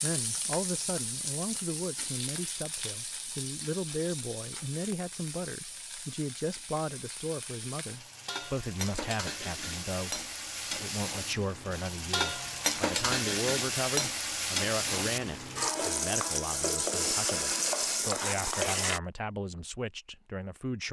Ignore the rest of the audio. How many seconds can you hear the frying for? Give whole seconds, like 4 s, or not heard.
19 s.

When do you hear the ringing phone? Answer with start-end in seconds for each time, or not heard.
not heard.